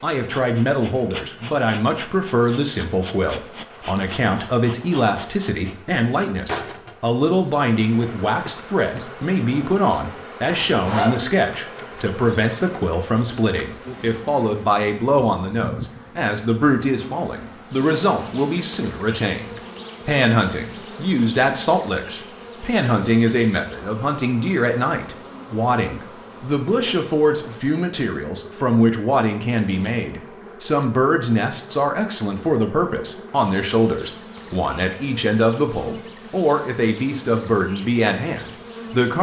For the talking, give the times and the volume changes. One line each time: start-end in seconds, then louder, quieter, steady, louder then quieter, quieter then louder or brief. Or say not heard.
0.0-39.1 steady.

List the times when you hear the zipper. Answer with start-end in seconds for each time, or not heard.
10.4-11.2.